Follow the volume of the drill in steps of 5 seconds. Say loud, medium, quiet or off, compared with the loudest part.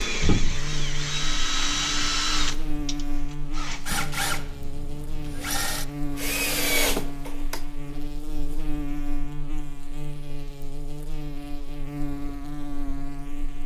loud, loud, off.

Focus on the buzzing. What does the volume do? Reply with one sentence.
The loudness of the buzzing stays about the same.